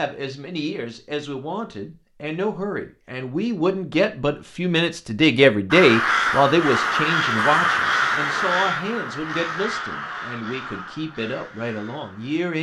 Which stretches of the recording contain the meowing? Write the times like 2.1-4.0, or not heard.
not heard.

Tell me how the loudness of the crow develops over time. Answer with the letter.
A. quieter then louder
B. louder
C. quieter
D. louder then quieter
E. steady
C.